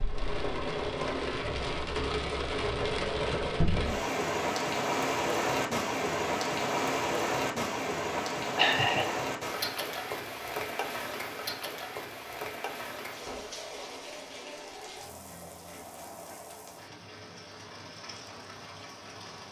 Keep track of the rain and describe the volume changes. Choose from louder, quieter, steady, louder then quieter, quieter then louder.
quieter.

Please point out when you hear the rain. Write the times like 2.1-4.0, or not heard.
0.0-19.4.